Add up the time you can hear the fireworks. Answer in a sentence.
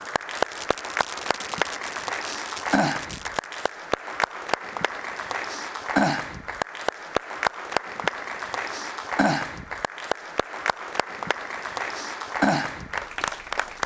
You can hear the fireworks for 4 seconds altogether.